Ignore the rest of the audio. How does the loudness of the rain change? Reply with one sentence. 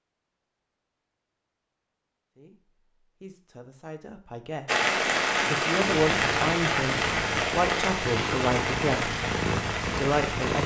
The volume of the rain goes down.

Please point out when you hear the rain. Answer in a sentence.
The rain can be heard from 4.7 to 10.6 s.